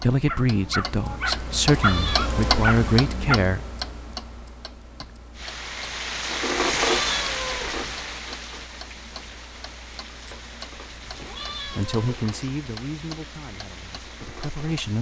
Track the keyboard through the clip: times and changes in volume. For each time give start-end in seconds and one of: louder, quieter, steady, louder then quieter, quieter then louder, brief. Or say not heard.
not heard.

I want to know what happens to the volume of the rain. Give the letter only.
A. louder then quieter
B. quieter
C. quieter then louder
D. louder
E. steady
B.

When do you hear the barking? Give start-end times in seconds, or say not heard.
0.2-3.4.